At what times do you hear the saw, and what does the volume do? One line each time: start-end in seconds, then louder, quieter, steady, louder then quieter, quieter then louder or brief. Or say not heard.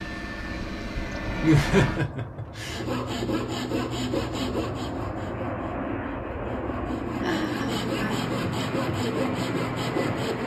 2.6-10.4 quieter then louder.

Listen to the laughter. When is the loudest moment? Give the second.
2 s.